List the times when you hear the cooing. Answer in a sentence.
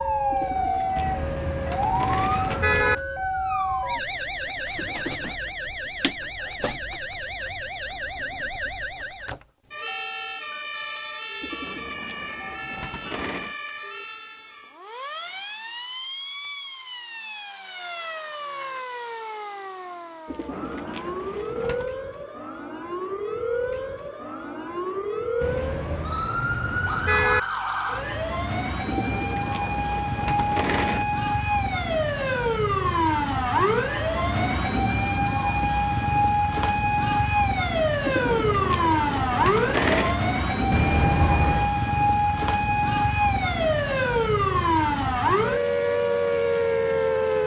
The cooing can be heard from 0.3 to 3.0 s, from 11.4 to 13.6 s, from 20.2 to 21.9 s, from 28.9 to 31.1 s and from 38.0 to 40.2 s.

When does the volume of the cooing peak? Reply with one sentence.
The loudest moment of the cooing is at 40 seconds.